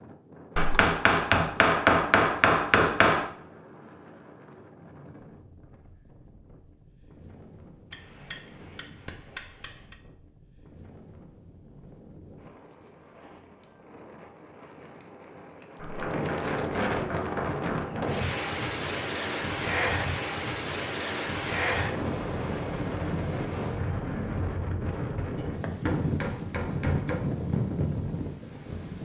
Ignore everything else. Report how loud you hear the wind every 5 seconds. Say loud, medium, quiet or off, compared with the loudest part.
quiet, quiet, quiet, loud, loud, loud.